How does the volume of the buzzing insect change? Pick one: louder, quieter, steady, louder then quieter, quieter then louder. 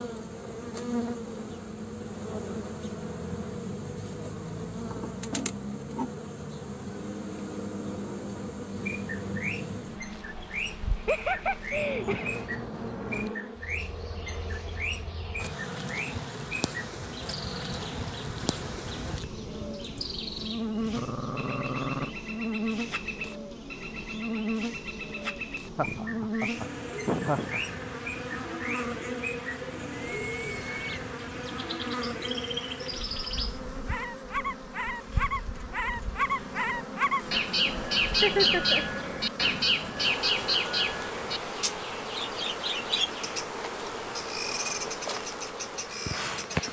steady.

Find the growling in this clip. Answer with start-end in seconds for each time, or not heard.
20.9-22.1.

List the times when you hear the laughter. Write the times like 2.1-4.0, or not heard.
10.9-12.4, 25.6-27.7, 38.2-38.9.